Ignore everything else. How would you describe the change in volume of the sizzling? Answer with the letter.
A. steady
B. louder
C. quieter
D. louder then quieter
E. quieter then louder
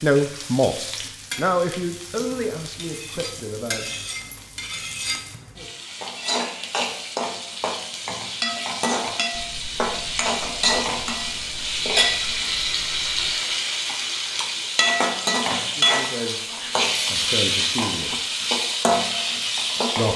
B.